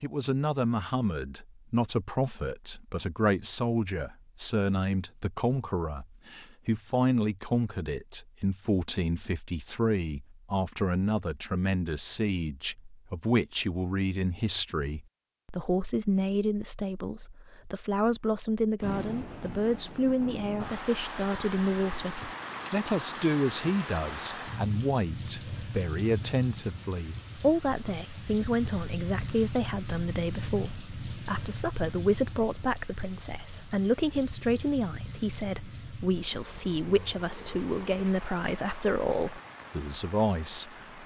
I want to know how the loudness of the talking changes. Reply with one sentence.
The volume of the talking stays about the same.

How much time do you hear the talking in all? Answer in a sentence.
You can hear the talking for 41 seconds altogether.